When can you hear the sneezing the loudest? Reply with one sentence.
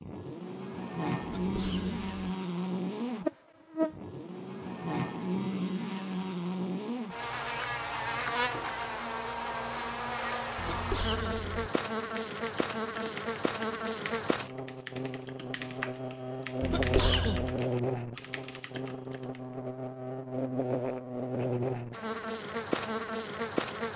The loudest moment of the sneezing is at 17 seconds.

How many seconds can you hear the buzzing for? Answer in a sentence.
The buzzing can be heard for 24 seconds in total.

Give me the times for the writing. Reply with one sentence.
The writing can't be heard in this clip.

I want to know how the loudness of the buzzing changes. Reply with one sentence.
The volume of the buzzing stays about the same.